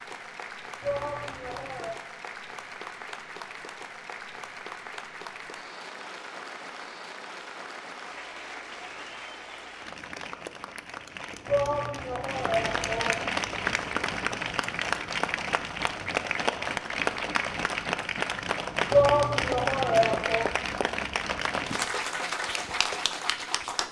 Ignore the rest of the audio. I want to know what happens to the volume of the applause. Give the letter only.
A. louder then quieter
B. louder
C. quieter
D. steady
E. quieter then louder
B.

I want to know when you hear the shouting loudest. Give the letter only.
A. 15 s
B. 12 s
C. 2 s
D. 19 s
D.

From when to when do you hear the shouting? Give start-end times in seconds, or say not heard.
0.8-1.9, 11.4-13.2, 18.9-20.5.